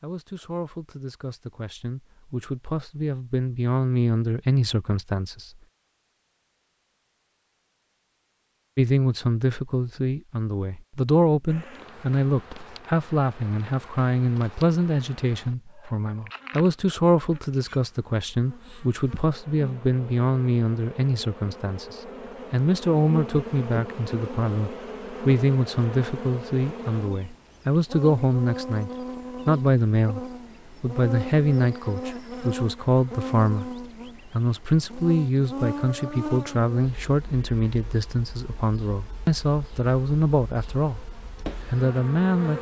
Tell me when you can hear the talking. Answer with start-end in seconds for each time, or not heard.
0.0-5.5, 8.8-41.1, 41.7-42.5.